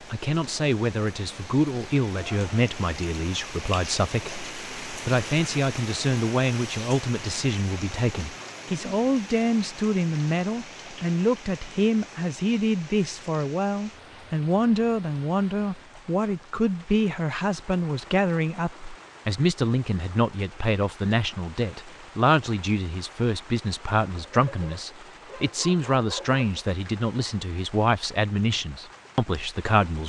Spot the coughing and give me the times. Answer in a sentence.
The coughing can't be heard in this clip.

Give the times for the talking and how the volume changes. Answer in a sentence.
The talking can be heard from 0.1 to 30.0 s, at a steady volume.